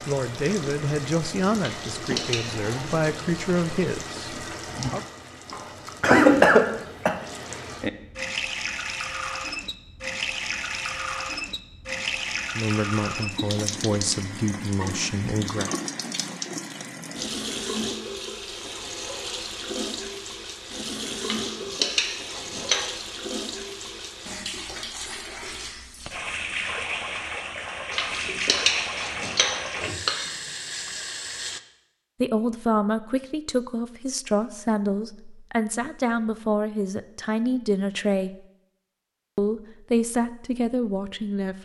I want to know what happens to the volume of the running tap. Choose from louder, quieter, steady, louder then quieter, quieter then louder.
steady.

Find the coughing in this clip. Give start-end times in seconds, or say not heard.
5.5-7.2.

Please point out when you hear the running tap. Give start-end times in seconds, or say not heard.
0.0-31.6.